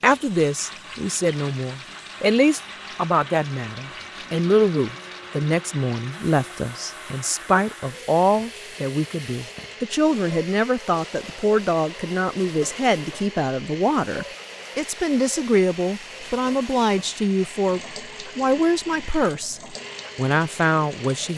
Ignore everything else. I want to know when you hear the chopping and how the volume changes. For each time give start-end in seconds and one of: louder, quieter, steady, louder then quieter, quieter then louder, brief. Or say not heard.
not heard.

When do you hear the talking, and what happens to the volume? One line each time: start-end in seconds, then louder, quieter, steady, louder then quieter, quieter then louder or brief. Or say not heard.
0.0-21.3 steady.